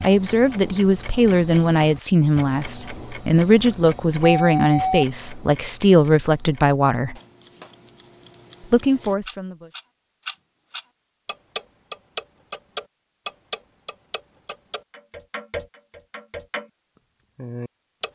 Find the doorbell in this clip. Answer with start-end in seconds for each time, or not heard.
4.2-5.0.